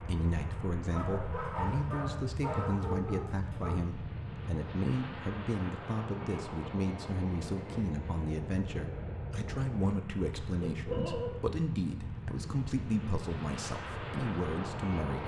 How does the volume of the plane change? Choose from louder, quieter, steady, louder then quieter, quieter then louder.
steady.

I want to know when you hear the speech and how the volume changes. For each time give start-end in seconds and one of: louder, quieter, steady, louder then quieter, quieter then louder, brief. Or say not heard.
0.1-15.2 steady.